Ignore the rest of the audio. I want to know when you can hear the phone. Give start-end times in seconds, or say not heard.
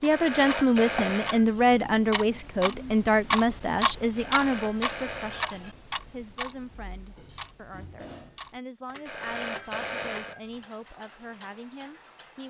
0.1-1.7, 4.2-5.8, 9.1-10.7.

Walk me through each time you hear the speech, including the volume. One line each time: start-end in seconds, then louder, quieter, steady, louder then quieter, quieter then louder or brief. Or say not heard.
0.0-12.4 quieter.